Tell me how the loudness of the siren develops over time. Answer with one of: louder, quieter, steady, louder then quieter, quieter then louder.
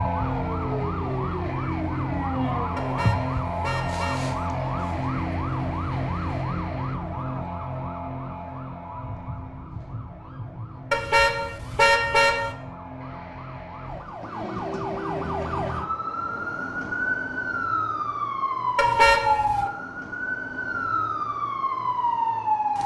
quieter then louder.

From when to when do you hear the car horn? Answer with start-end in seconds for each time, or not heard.
2.8-4.4, 10.9-12.6, 18.8-19.7.